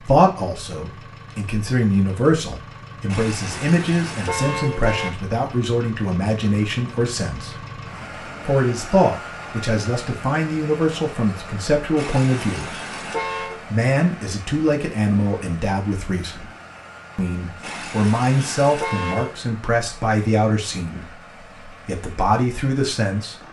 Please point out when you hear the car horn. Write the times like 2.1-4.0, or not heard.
3.0-5.1, 11.9-13.6, 17.6-19.4.